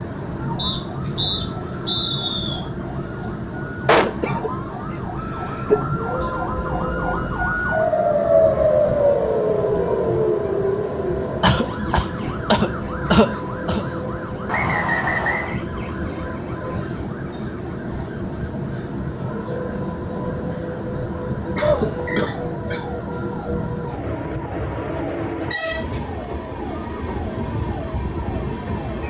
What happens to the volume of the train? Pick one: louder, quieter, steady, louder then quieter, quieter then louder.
steady.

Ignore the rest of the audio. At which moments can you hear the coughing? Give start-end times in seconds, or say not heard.
3.9-5.8, 11.4-13.8, 21.6-22.9.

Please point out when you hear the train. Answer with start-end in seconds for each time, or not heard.
0.0-29.0.